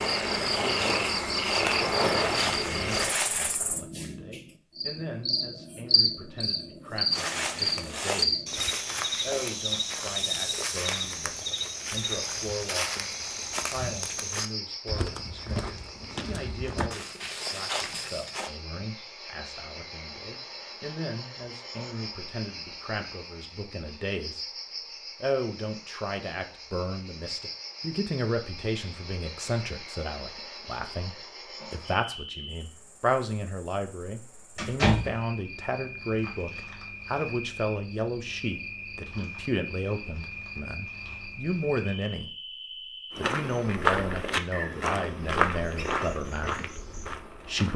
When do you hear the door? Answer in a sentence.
The door can be heard from 34.5 to 35.2 s.